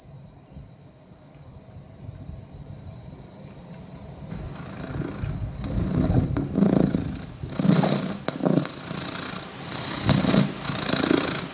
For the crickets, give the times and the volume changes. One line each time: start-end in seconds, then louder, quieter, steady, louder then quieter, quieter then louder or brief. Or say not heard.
0.0-11.4 louder then quieter.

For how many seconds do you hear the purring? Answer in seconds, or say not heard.
7 s.